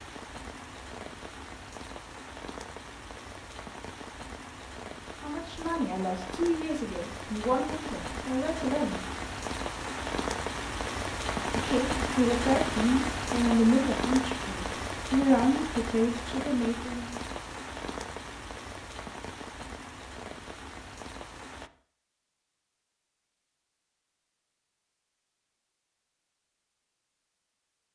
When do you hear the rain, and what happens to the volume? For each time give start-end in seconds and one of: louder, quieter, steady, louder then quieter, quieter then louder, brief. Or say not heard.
0.0-21.7 louder then quieter.